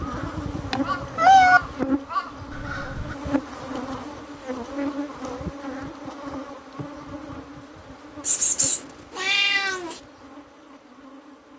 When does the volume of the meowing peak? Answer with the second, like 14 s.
1 s.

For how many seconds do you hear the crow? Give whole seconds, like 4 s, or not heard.
3 s.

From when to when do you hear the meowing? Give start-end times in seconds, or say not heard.
0.7-1.6, 8.2-9.9.